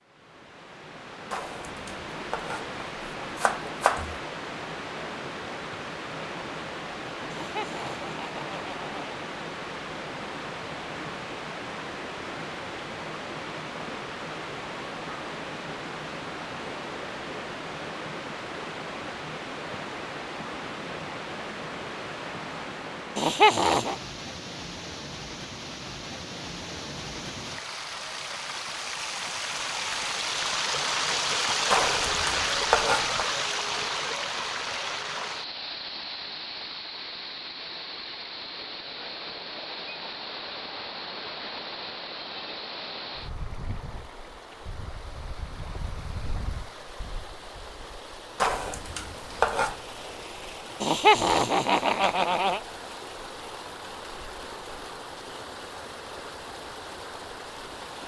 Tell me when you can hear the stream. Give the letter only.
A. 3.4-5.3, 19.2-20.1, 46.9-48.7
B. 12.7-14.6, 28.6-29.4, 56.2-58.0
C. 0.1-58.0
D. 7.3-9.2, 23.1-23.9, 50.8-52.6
C.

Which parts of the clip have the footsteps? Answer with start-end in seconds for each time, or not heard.
not heard.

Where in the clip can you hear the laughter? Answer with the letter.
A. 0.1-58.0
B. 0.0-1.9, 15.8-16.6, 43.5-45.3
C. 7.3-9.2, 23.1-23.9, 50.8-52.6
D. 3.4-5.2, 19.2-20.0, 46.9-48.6
C.